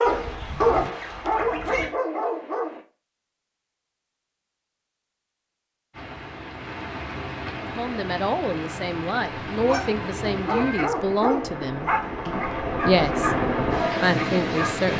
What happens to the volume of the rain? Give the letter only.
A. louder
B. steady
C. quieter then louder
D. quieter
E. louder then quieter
A.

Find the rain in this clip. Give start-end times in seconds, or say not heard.
5.9-14.9.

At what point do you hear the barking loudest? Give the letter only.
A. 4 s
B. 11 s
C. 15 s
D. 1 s
D.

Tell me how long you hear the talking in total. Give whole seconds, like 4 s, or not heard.
7 s.